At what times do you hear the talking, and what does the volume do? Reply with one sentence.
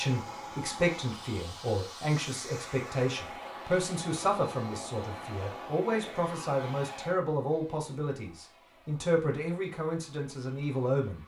You can hear the talking from 0.0 to 11.2 s, at a steady volume.